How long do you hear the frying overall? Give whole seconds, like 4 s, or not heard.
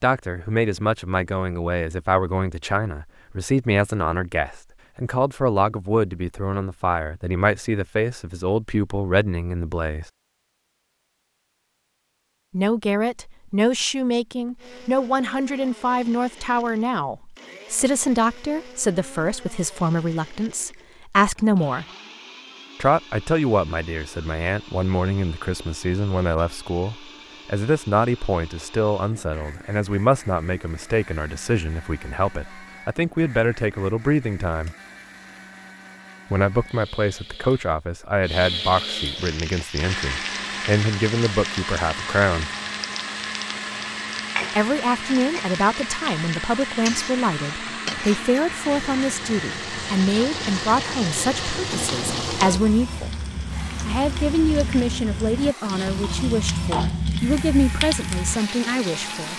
20 s.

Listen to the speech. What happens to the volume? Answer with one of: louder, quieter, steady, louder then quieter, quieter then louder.
steady.